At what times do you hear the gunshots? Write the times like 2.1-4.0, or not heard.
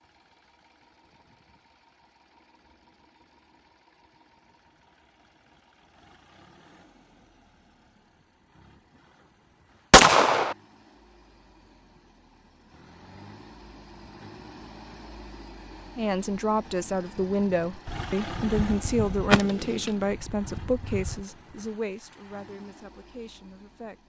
9.9-10.6, 17.9-21.2.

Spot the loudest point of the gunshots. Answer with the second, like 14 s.
10 s.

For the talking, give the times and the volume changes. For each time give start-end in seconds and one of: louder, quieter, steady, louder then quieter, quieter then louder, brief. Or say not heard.
15.9-24.0 quieter.